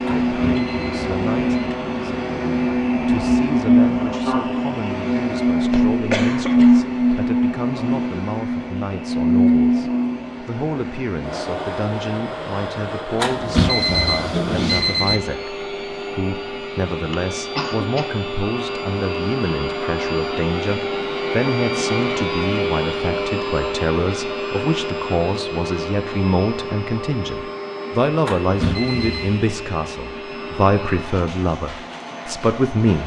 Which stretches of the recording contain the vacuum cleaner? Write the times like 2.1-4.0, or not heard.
0.0-33.0.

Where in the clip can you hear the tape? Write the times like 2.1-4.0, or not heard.
not heard.